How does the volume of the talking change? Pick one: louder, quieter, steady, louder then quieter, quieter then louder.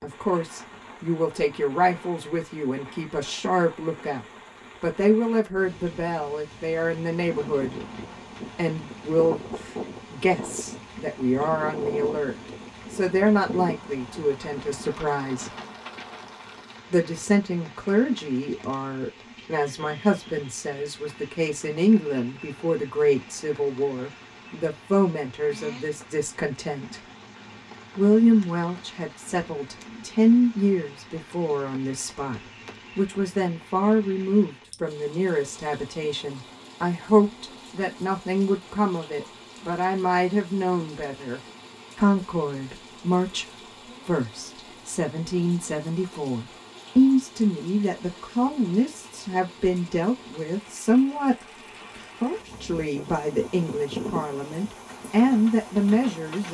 steady.